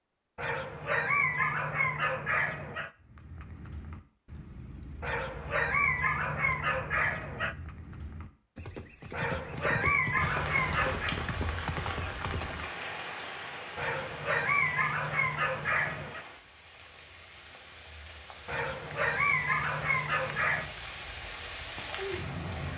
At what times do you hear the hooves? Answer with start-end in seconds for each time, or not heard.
3.0-12.6.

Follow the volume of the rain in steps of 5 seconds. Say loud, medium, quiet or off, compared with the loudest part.
off, off, loud, medium, loud.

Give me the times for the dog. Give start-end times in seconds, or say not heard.
0.3-2.9, 5.0-7.5, 9.1-11.2, 13.8-16.2, 18.4-20.8.